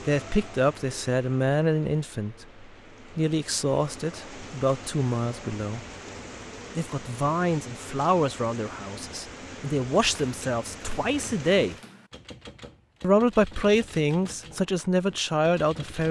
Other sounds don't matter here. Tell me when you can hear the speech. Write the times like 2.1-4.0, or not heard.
0.1-5.8, 6.8-11.8, 13.0-16.0.